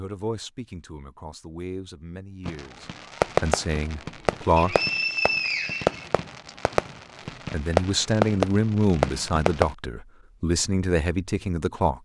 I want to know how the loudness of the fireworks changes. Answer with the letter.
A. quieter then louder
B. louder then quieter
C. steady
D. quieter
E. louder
A.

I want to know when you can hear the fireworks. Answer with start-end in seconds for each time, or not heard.
2.5-9.8.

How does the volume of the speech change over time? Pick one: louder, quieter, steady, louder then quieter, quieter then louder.
louder.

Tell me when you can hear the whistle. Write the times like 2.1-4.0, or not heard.
4.5-6.5.